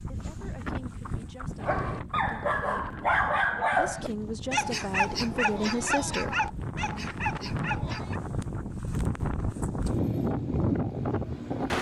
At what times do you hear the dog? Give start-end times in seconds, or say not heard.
1.6-8.2.